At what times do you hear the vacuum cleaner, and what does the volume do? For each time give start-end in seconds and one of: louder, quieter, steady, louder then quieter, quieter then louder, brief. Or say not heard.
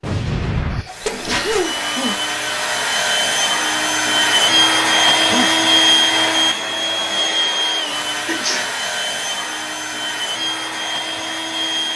0.0-11.9 louder then quieter.